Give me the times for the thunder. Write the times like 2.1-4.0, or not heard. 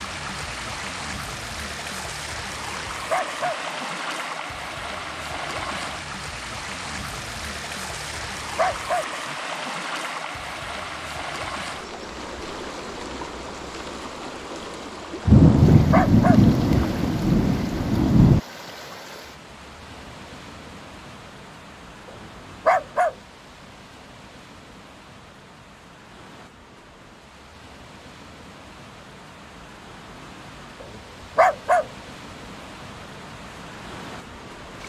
15.2-18.4.